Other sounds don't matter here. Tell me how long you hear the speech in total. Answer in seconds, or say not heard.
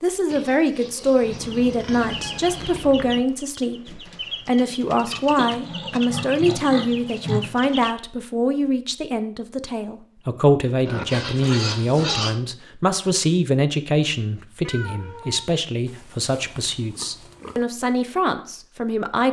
19 s.